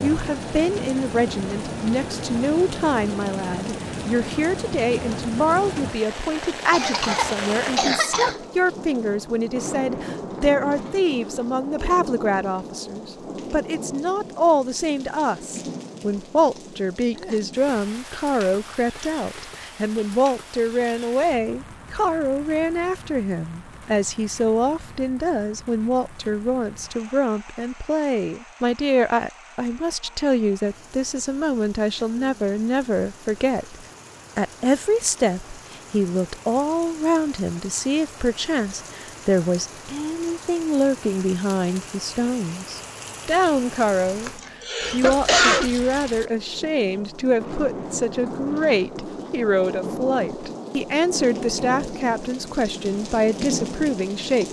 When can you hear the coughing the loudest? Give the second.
45 s.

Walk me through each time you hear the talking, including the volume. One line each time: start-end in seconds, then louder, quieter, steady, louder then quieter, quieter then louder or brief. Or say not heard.
0.0-54.4 steady.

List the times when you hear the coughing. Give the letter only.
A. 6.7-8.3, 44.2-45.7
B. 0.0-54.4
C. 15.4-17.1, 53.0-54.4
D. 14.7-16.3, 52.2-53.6
A.